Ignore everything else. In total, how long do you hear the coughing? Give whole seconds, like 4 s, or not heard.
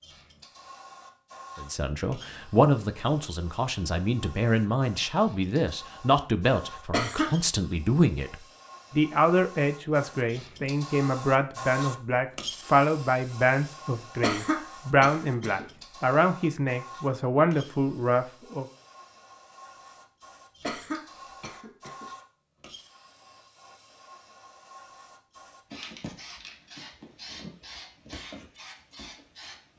3 s.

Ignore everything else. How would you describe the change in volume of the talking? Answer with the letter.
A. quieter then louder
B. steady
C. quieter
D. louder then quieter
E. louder
B.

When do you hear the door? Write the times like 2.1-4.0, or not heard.
not heard.